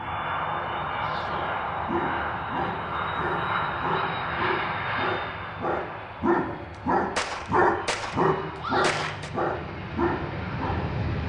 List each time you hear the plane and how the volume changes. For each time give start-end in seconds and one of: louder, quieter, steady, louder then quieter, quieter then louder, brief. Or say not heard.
0.0-11.2 quieter then louder.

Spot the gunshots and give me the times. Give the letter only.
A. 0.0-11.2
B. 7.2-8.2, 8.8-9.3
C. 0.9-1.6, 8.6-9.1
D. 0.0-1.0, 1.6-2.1
B.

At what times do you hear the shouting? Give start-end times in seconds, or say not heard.
0.9-1.6, 8.6-9.1.